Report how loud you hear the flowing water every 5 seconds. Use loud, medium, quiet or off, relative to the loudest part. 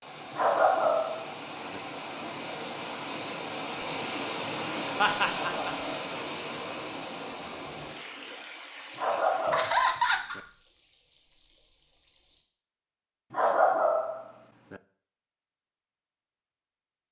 loud, loud, quiet, off.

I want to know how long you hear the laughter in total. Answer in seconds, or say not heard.
2 s.